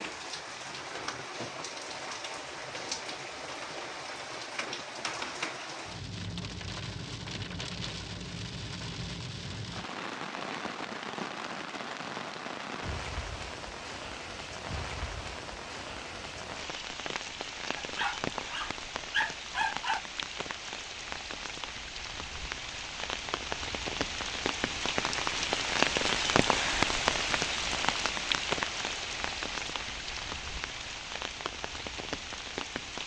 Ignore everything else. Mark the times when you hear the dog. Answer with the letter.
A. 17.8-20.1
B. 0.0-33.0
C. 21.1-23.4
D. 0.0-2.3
A.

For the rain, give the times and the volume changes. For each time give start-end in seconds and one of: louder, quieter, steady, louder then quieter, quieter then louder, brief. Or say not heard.
0.0-33.0 louder.